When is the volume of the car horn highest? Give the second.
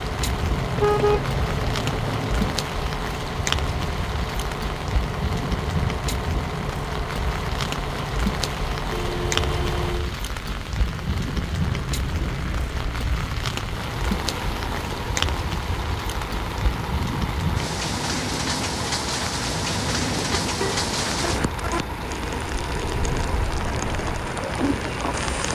1 s.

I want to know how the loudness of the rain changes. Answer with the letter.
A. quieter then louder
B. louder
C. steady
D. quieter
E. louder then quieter
C.